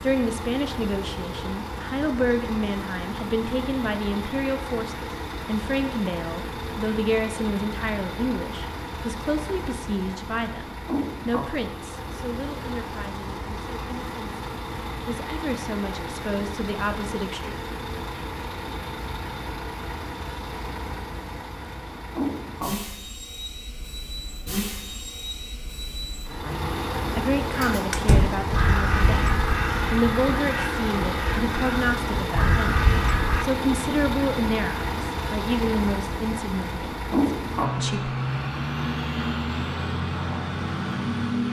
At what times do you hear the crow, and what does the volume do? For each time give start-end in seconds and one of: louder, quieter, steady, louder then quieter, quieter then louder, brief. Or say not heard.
27.6-33.5 quieter then louder.